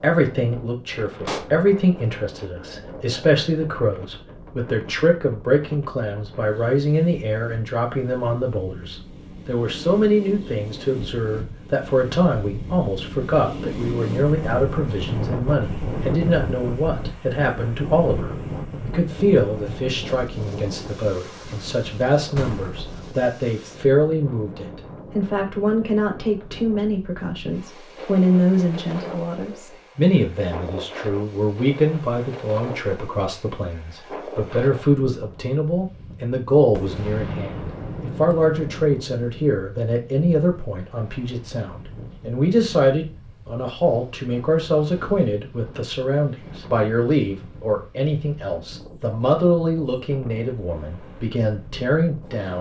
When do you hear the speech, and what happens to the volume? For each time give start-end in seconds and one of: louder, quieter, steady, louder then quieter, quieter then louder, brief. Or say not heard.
0.0-52.5 steady.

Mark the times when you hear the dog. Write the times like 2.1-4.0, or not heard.
not heard.